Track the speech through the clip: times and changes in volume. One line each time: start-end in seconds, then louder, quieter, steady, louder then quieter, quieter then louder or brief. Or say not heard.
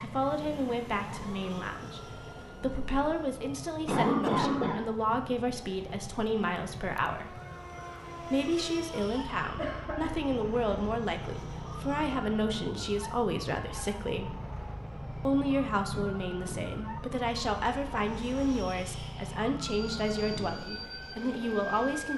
0.0-7.3 steady
8.2-14.3 steady
15.2-22.1 steady.